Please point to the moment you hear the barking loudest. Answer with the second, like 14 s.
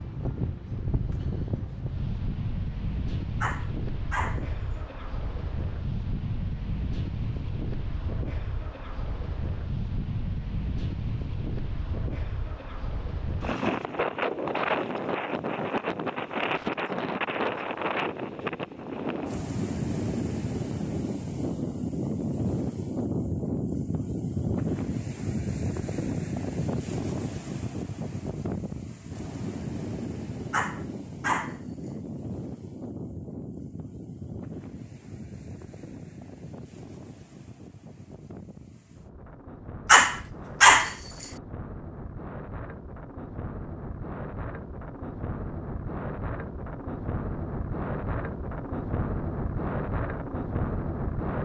41 s.